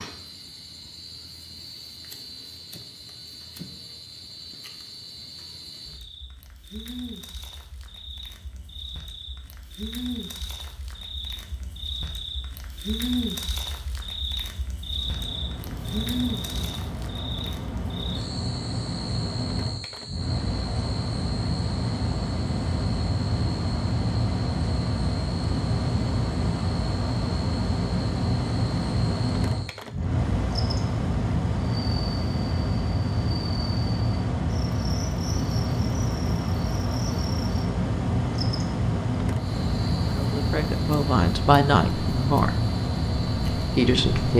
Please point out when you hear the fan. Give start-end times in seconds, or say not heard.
14.8-44.3.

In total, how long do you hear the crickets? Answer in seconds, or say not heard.
44 s.